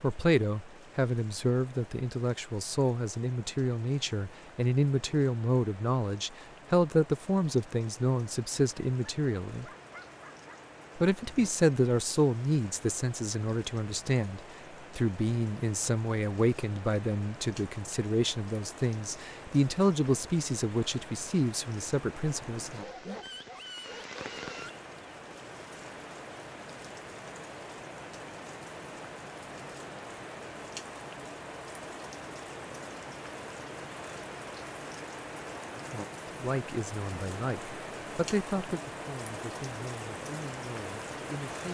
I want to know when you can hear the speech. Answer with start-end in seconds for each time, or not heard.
0.0-9.7, 10.9-23.1, 36.4-41.6.